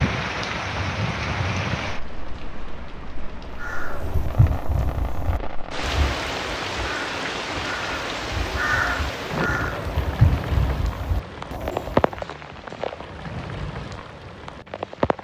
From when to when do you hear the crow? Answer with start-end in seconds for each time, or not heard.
3.6-12.2.